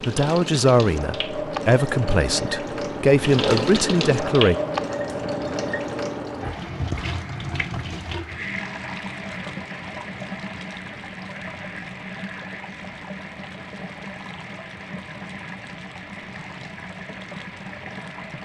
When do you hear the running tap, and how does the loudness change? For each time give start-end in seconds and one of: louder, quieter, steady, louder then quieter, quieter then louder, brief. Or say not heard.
0.0-18.4 quieter.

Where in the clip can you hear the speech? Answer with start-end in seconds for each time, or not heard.
0.1-4.5.